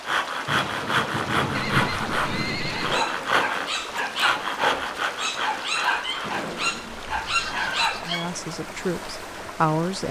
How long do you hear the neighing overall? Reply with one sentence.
The neighing can be heard for 3 seconds in total.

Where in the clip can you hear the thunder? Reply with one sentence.
The thunder can be heard from 0.5 to 3.0 s.